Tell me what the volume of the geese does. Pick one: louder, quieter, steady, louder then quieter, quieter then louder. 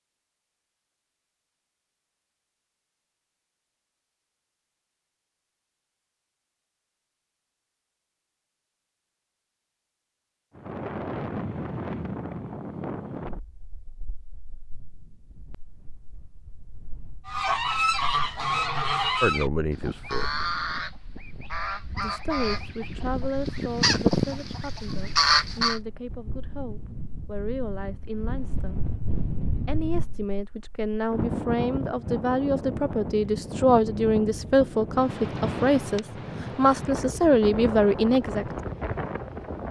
quieter then louder.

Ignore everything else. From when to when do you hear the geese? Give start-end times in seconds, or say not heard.
17.2-25.8.